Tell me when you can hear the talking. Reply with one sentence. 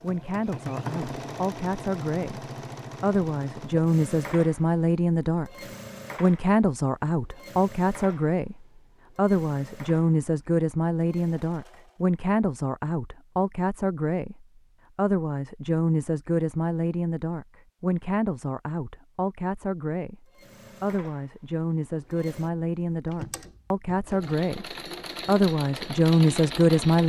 You can hear the talking from 0.0 to 27.0 s.